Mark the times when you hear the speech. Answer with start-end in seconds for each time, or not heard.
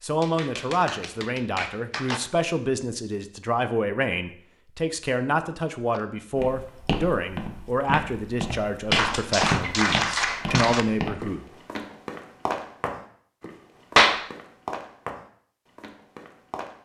0.0-11.4.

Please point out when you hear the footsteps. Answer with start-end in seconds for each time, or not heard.
6.3-16.8.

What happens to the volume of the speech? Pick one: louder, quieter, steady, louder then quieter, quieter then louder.
steady.